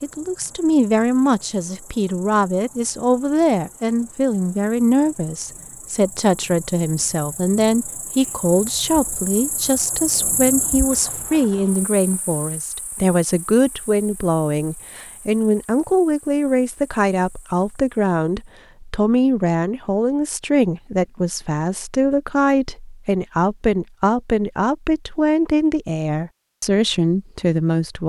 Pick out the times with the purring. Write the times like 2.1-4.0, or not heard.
not heard.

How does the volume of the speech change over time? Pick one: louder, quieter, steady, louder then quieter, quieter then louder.
steady.